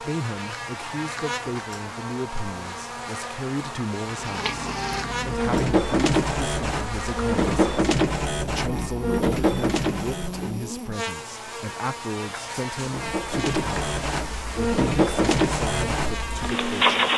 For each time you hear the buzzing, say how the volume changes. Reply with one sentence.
The buzzing can be heard from 0.0 to 17.1 s, at a steady volume.